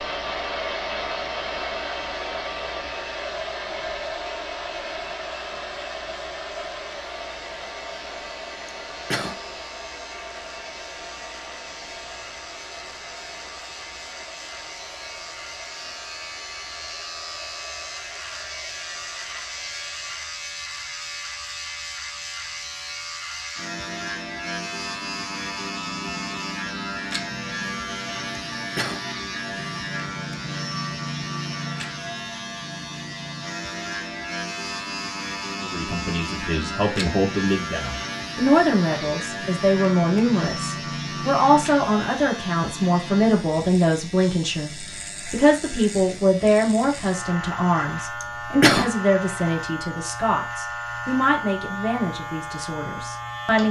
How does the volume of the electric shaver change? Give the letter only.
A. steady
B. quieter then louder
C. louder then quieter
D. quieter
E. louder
E.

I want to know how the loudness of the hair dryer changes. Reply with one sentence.
The loudness of the hair dryer goes down.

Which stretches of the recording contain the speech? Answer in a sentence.
The speech can be heard from 35.6 to 53.6 s.